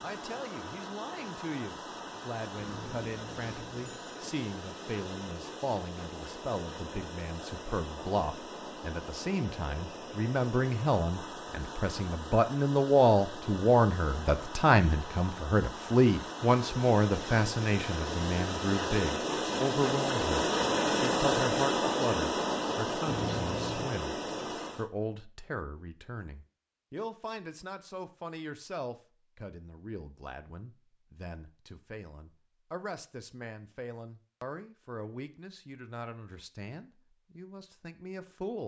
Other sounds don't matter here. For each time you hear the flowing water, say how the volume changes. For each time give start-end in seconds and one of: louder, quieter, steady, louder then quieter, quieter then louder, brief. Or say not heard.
0.0-24.9 louder.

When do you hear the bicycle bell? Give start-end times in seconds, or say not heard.
2.5-4.2, 23.1-23.9.